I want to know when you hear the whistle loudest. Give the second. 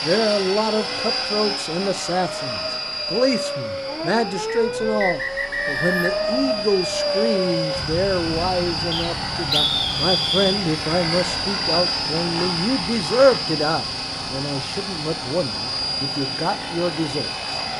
10 s.